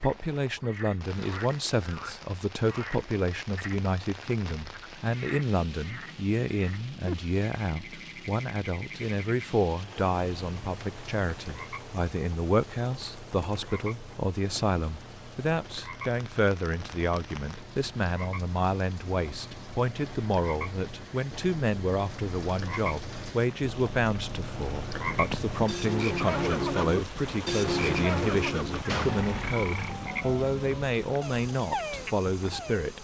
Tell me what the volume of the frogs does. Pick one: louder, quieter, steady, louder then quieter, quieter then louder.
louder.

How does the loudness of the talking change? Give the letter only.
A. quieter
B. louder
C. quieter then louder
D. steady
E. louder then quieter
D.